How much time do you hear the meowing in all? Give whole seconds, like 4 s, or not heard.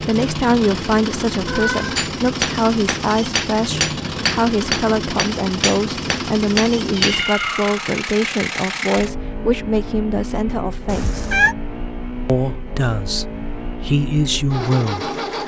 2 s.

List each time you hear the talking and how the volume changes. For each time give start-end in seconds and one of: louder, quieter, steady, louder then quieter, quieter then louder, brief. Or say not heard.
0.0-11.3 steady
12.2-15.1 brief.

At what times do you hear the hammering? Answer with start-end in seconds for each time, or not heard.
1.9-7.2.